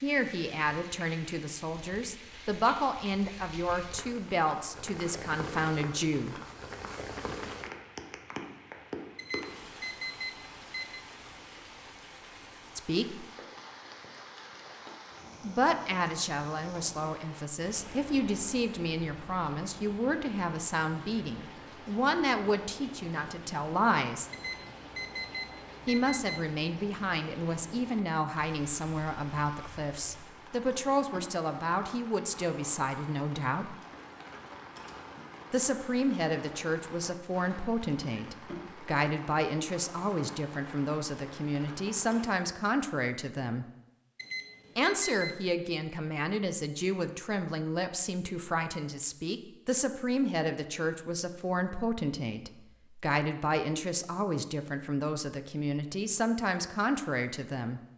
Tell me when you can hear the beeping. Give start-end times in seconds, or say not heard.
9.2-11.1, 24.3-26.6, 44.1-45.5.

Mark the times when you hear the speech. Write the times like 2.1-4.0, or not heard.
0.0-6.3, 12.8-13.2, 15.4-24.3, 25.9-33.8, 35.5-43.6, 44.8-57.8.